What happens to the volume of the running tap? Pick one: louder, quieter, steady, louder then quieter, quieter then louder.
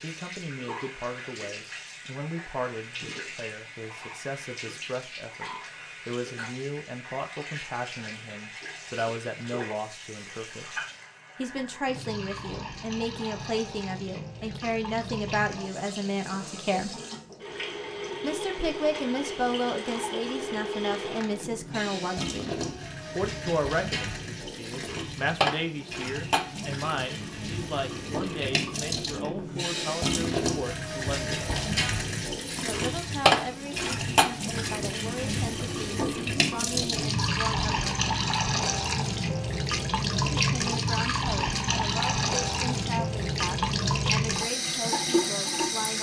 louder.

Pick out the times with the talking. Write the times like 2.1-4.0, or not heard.
0.0-10.8, 11.3-16.9, 18.2-22.6, 23.1-31.4, 32.6-37.9, 40.4-45.9.